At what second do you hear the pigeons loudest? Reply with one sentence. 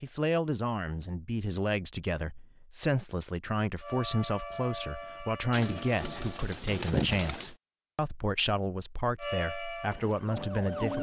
The loudest moment of the pigeons is at 7 seconds.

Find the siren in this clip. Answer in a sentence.
You can hear the siren from 3.8 to 6.5 s and from 9.2 to 10.9 s.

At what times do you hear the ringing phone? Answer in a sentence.
The ringing phone can't be heard in this clip.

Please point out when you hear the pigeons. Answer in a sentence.
You can hear the pigeons from 5.5 to 7.5 s.